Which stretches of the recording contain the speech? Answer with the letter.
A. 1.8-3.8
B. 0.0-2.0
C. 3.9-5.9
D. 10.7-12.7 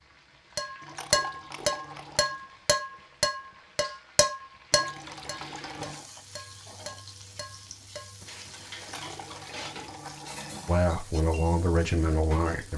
D.